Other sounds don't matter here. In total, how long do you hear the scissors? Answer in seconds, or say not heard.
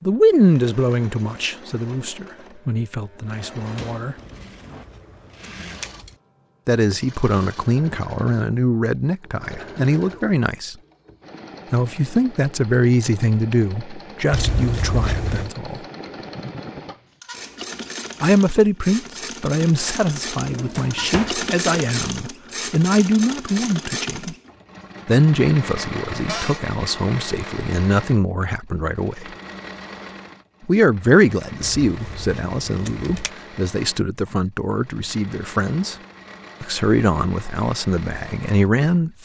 5 s.